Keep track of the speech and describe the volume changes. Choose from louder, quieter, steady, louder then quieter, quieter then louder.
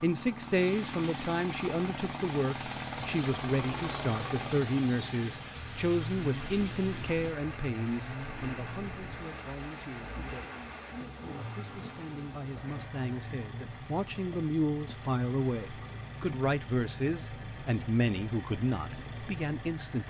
quieter then louder.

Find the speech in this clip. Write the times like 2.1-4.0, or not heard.
0.0-20.0.